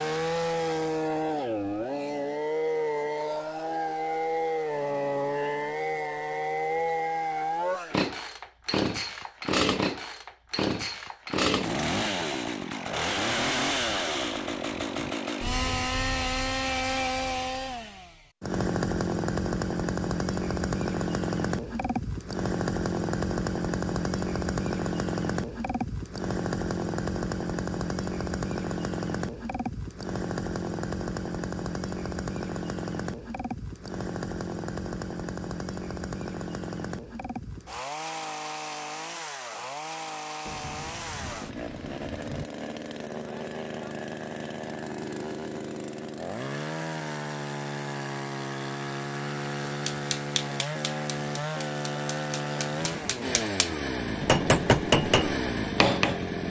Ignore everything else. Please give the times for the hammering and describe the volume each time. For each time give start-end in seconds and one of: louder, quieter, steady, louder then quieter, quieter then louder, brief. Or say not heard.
49.6-56.1 quieter then louder.